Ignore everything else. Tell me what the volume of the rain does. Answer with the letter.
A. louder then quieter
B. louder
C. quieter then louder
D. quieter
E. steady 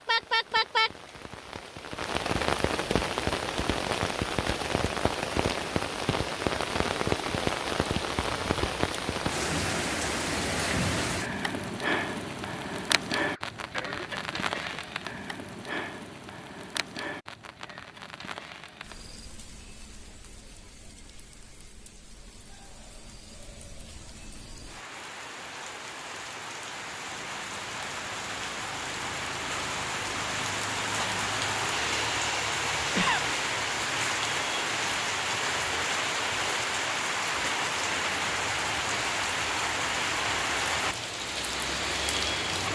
C.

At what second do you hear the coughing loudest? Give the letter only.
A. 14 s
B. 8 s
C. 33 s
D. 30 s
C.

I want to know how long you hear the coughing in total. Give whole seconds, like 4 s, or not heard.
2 s.